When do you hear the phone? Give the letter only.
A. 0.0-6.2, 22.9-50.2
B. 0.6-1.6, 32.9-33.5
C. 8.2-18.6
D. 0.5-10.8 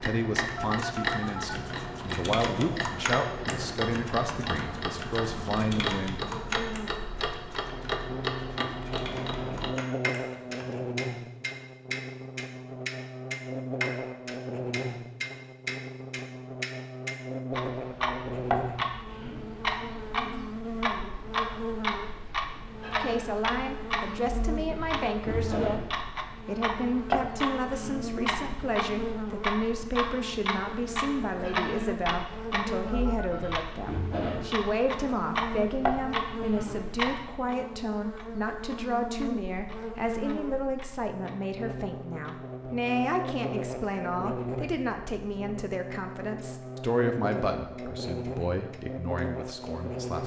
B.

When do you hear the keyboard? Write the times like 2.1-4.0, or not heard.
0.5-10.8.